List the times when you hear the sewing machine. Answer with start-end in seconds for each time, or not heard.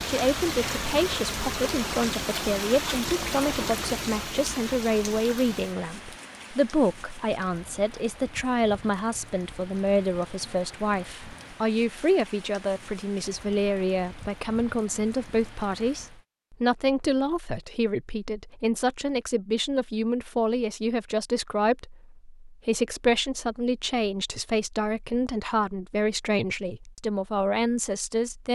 not heard.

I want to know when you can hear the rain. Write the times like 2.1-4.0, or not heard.
0.0-16.2.